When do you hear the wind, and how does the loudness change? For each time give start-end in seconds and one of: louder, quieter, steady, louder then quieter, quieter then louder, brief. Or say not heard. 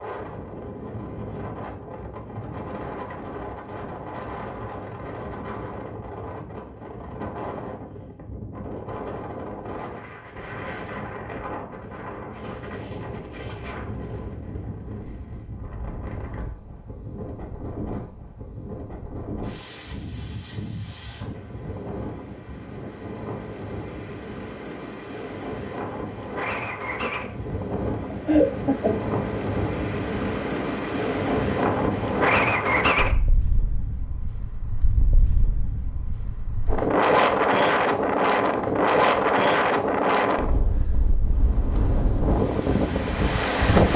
0.0-43.9 louder.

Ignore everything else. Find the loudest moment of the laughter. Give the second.
28 s.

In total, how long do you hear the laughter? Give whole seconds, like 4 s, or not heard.
2 s.